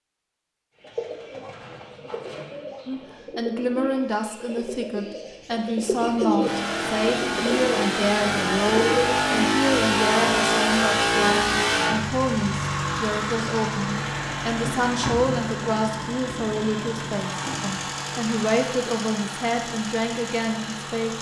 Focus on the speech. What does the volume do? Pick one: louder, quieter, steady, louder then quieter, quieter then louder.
steady.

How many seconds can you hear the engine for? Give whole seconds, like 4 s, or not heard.
15 s.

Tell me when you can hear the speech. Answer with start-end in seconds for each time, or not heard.
2.9-21.1.